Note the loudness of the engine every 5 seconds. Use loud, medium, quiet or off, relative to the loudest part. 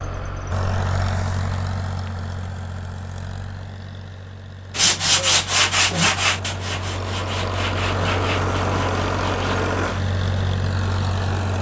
medium, loud, loud.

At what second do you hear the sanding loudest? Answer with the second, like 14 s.
5 s.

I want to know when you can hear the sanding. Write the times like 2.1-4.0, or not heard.
4.8-9.6.